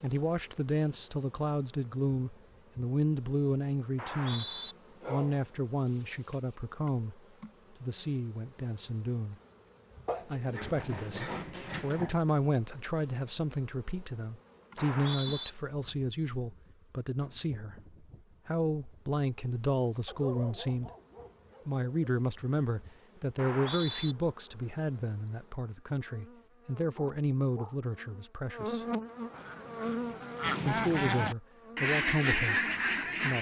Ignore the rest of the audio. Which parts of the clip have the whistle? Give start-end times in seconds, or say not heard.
4.0-4.8, 14.8-15.5, 23.4-24.1.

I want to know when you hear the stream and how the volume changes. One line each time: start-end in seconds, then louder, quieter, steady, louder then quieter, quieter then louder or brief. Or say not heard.
not heard.